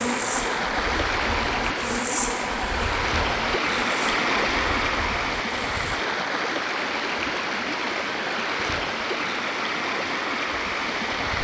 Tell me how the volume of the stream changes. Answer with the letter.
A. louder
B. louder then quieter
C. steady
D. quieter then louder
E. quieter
C.